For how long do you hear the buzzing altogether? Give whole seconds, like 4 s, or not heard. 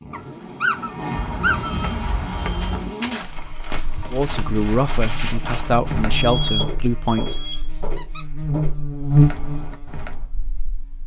11 s.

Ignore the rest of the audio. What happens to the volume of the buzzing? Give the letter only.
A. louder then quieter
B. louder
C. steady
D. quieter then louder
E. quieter
B.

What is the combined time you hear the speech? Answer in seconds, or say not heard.
3 s.